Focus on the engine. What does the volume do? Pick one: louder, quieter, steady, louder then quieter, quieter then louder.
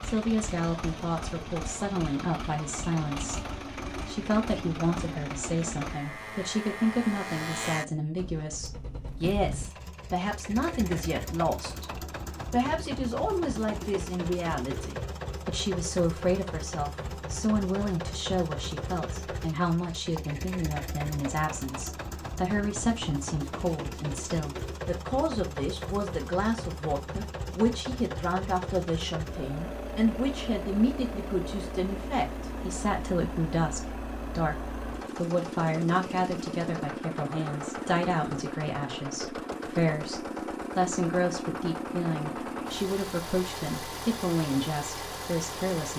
steady.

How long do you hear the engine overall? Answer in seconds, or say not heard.
46 s.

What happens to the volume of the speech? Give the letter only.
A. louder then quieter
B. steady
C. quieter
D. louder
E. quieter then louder
B.